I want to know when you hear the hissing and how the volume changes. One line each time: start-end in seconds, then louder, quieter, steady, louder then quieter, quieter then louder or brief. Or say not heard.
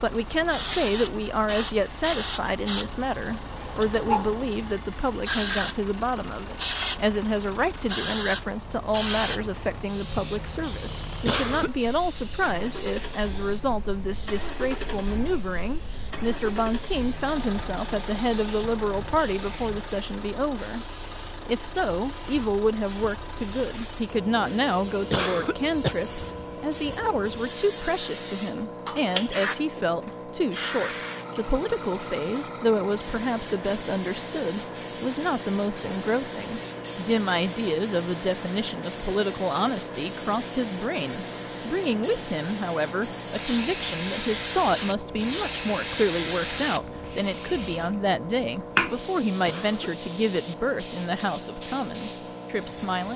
0.0-53.1 quieter then louder.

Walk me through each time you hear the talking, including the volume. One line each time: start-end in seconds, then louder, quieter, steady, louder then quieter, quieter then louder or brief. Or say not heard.
0.0-53.1 steady.